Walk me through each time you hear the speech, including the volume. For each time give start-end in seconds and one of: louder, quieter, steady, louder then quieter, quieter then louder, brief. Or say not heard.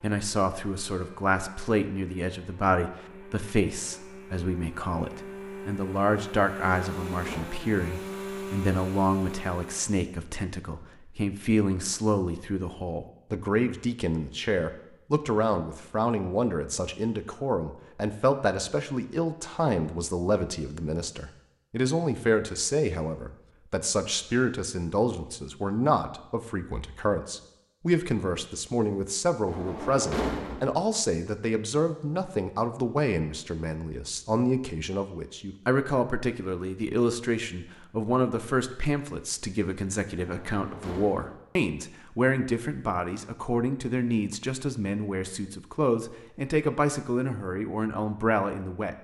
0.0-48.9 steady.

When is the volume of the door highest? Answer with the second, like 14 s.
30 s.